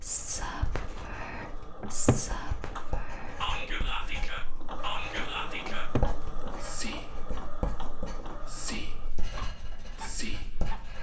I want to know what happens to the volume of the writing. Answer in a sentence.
The volume of the writing goes up, then down.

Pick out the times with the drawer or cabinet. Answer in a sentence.
You can hear the drawer or cabinet from 1.8 to 2.2 s and from 5.7 to 6.1 s.